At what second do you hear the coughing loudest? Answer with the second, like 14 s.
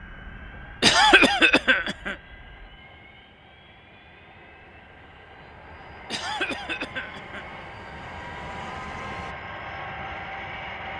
1 s.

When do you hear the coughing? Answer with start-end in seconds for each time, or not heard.
0.8-2.1, 6.1-7.5.